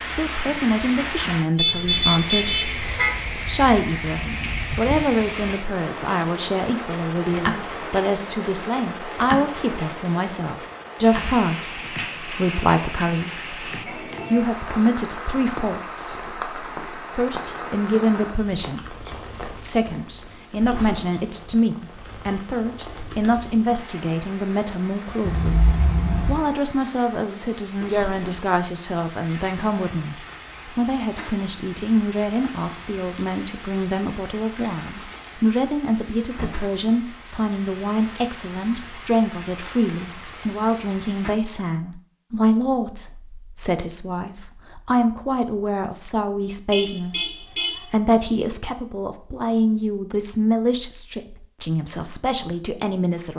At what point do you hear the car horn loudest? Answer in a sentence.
The loudest moment of the car horn is at 2 seconds.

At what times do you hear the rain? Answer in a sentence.
You can hear the rain from 0.0 to 41.4 s.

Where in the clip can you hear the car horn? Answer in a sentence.
You can hear the car horn from 1.6 to 3.1 s, from 25.2 to 26.4 s and from 46.7 to 47.8 s.